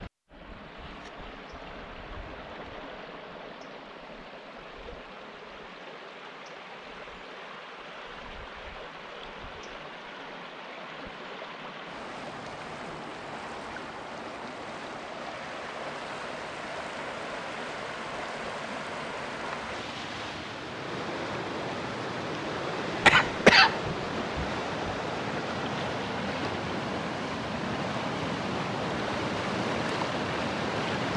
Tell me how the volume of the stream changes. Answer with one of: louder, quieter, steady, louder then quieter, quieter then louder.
louder.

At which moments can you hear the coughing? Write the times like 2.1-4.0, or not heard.
23.1-24.9.